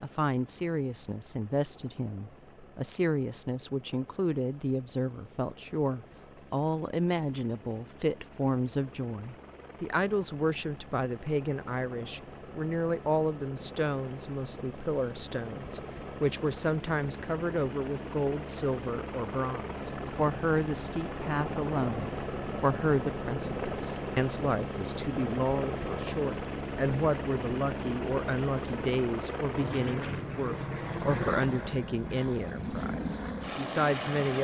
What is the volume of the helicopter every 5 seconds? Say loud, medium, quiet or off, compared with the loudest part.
quiet, quiet, medium, medium, loud, loud, loud.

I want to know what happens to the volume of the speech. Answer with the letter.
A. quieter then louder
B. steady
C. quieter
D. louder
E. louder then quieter
B.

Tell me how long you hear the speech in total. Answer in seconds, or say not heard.
34 s.